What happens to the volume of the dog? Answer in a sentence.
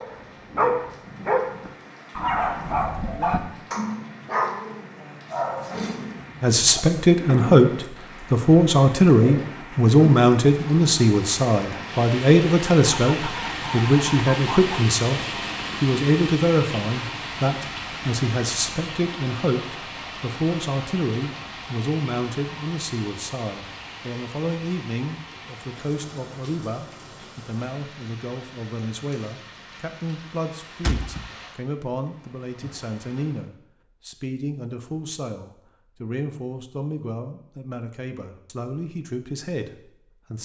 The volume of the dog goes down.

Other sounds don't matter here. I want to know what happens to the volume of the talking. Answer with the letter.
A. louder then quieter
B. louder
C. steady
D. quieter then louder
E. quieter
E.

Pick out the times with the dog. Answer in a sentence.
You can hear the dog from 0.0 to 7.0 s.